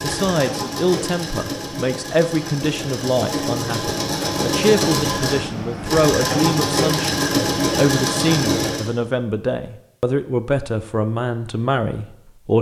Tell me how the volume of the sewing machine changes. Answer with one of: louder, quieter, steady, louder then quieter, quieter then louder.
louder.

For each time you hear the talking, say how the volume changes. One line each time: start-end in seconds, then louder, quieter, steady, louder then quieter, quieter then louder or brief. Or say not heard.
0.0-12.5 steady.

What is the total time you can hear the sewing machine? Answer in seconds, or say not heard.
9 s.